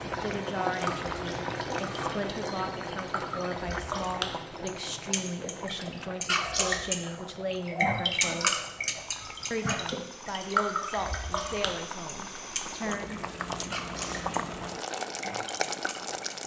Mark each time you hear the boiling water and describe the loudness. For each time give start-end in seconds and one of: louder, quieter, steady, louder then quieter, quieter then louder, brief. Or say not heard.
0.0-16.4 quieter then louder.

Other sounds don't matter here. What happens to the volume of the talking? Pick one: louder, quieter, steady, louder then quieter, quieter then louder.
steady.